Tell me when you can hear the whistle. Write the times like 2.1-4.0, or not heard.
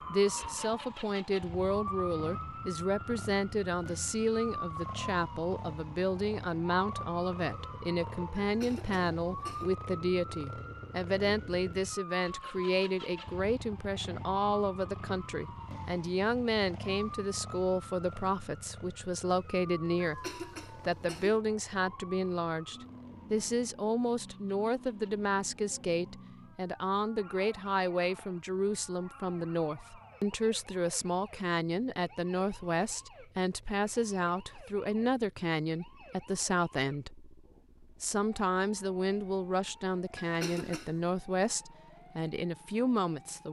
not heard.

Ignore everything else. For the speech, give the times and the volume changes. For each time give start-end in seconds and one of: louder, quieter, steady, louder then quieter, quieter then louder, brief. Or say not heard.
0.1-43.4 steady.